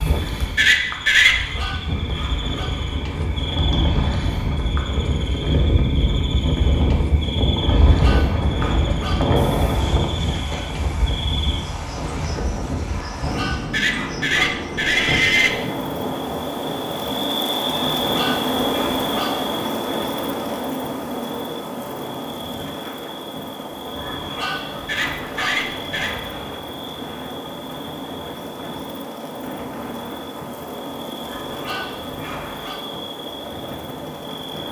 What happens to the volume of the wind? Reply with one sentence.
The loudness of the wind goes down.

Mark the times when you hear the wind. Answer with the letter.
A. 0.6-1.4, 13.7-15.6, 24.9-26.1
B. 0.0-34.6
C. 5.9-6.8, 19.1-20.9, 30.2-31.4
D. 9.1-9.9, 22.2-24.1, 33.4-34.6
B.